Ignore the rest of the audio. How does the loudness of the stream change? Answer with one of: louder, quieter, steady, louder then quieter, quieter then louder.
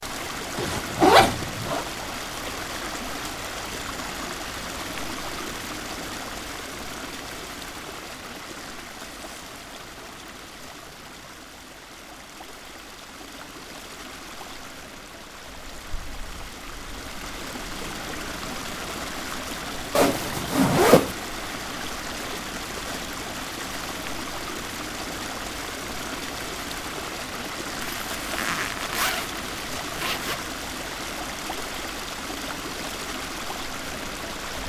quieter then louder.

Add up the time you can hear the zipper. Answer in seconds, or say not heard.
5 s.